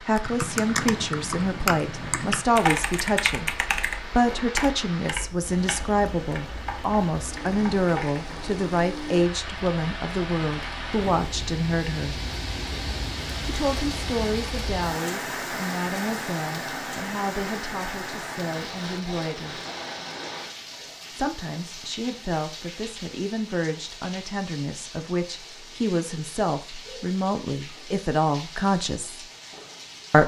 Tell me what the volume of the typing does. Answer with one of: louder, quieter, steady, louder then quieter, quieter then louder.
quieter.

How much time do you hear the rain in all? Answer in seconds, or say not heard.
30 s.